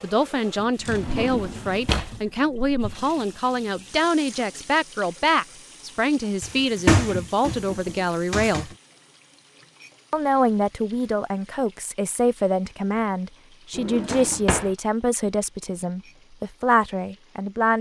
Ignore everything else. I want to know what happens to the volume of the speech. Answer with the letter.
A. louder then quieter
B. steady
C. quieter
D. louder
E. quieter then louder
B.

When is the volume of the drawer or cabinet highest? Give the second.
7 s.